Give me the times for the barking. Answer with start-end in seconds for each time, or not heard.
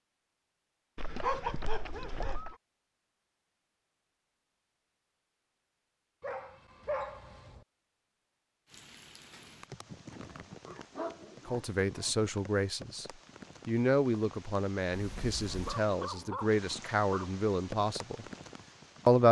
0.9-2.5, 6.2-7.7, 10.3-12.1, 15.6-17.4.